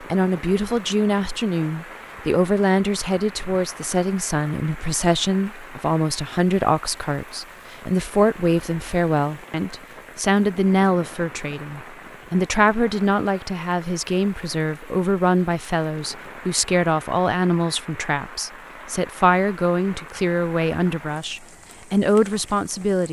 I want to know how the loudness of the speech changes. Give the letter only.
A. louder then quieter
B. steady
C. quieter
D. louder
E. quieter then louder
B.